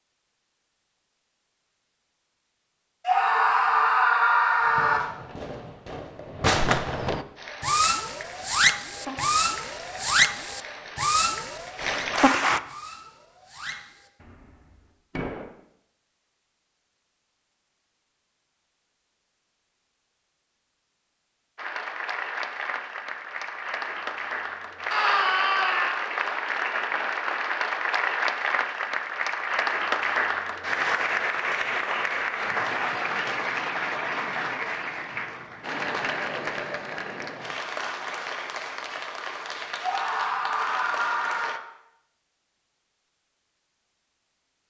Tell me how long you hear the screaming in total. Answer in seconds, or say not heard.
5 s.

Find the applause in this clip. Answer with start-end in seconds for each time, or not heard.
7.3-12.6, 21.6-41.6.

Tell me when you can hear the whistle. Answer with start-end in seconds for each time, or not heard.
not heard.